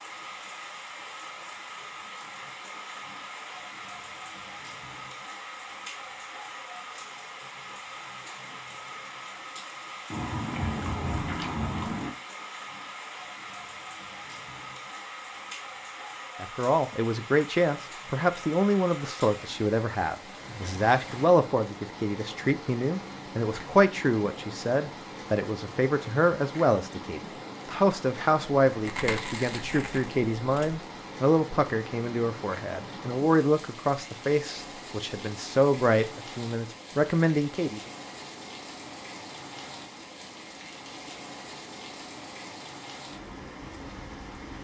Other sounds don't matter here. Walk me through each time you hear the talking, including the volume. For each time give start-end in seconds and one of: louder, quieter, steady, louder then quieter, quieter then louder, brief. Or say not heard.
16.4-37.8 steady.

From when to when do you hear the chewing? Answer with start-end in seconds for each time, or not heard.
10.1-12.1, 28.7-30.8.